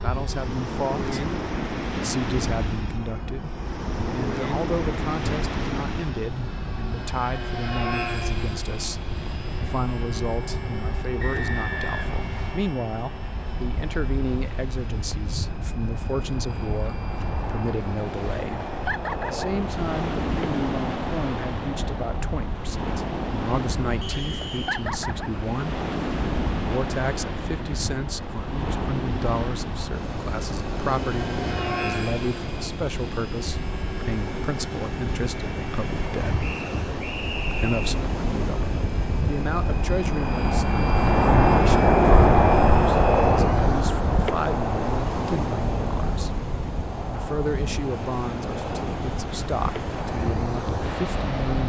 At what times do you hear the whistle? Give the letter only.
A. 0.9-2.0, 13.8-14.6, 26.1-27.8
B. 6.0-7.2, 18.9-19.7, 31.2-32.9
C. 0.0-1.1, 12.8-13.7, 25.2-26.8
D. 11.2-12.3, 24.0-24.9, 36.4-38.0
D.